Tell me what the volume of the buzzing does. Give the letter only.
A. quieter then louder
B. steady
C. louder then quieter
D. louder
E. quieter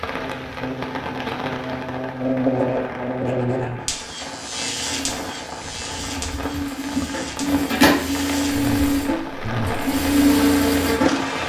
A.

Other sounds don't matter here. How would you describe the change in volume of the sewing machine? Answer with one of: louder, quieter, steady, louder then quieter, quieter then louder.
louder.